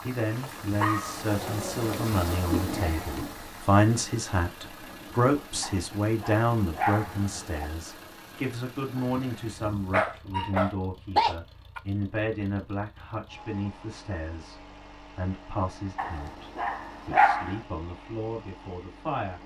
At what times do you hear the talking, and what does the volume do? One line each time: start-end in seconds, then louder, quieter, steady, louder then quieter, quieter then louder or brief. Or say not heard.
0.0-19.4 quieter.